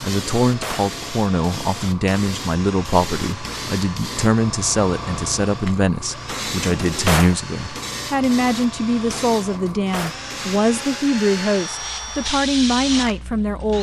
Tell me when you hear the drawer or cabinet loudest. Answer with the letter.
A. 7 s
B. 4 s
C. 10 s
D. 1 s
A.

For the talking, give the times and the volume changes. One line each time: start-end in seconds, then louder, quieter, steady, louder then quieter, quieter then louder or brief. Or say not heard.
0.0-13.7 steady.